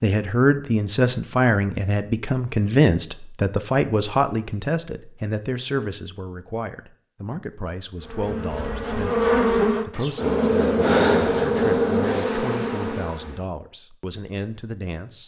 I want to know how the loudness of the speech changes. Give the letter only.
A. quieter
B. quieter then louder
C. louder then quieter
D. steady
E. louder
A.